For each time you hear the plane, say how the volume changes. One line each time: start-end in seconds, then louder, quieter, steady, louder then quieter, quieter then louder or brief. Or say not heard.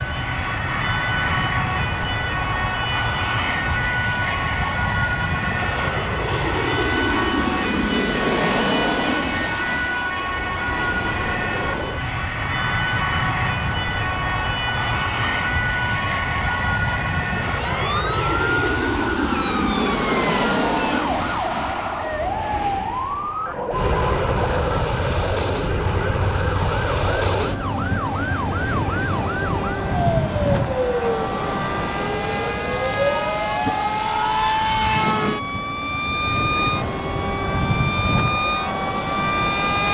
0.0-39.8 steady.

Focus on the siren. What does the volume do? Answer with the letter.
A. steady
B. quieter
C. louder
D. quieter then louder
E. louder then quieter
A.